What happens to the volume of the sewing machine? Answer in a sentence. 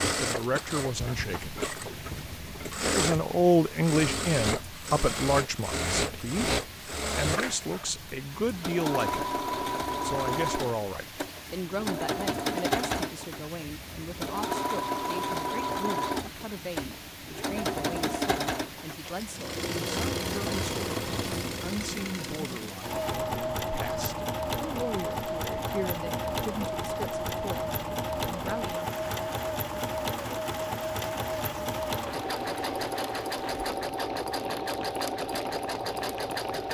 The volume of the sewing machine stays about the same.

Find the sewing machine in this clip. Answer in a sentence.
You can hear the sewing machine from 0.0 to 36.6 s.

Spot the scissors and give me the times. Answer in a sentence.
You can't hear the scissors here.